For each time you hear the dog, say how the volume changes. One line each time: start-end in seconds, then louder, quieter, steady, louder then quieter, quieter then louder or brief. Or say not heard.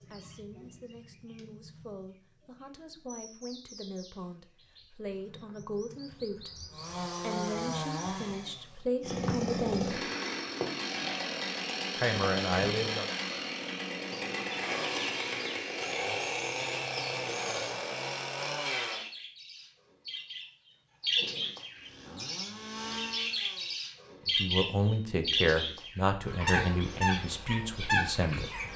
not heard.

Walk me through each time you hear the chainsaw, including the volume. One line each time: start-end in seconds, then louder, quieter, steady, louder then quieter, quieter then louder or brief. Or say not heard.
6.7-19.1 steady
21.8-23.8 brief.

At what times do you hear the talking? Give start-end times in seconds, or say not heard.
0.1-6.5, 7.2-9.8, 11.9-13.1, 24.2-28.6.